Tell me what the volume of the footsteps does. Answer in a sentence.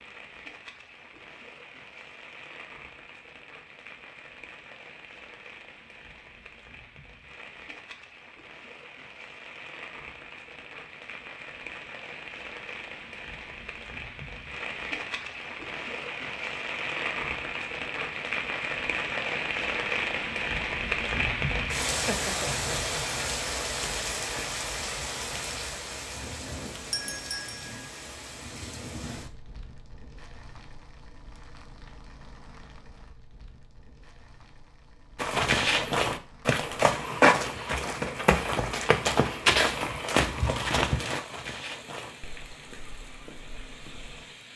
The loudness of the footsteps goes down.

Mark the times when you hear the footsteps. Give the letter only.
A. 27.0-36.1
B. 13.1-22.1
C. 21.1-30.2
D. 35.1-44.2
D.